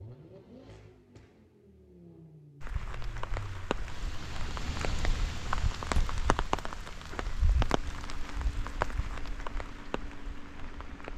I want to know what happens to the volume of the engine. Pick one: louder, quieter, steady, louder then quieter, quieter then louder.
louder then quieter.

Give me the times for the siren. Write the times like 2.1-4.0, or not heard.
not heard.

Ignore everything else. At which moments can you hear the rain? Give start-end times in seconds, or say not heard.
2.6-11.1.